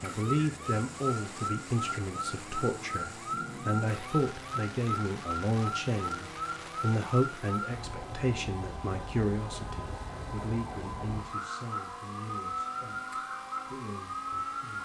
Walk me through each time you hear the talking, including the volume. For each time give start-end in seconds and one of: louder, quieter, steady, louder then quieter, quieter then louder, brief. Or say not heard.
0.0-14.8 quieter.